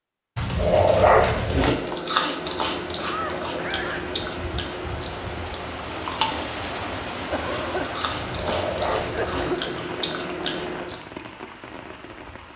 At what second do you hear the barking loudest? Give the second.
1 s.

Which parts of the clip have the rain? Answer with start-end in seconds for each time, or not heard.
2.4-12.5.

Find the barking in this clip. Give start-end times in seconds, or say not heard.
0.3-1.7, 8.2-9.5.